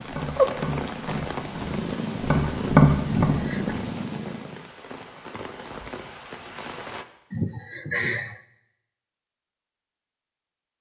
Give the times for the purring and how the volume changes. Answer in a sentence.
You can hear the purring from 0.0 to 4.7 s, getting quieter.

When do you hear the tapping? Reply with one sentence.
The tapping can be heard from 0.0 to 3.8 s.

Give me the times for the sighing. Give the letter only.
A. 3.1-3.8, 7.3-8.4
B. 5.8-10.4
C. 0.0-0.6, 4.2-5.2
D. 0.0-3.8
A.